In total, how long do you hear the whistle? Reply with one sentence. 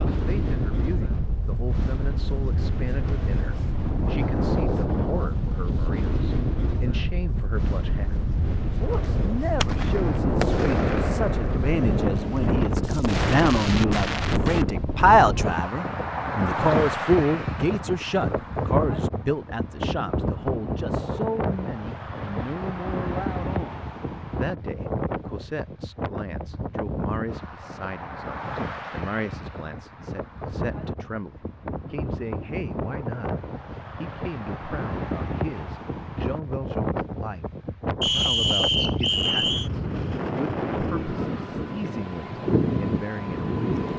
You can hear the whistle for 2 seconds altogether.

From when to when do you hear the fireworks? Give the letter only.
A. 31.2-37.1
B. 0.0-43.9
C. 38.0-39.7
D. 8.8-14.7
D.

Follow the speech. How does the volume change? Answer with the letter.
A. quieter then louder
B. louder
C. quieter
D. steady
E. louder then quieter
E.